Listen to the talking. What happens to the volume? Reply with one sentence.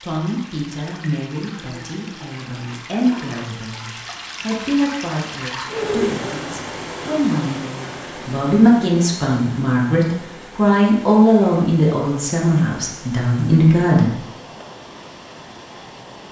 The loudness of the talking goes up.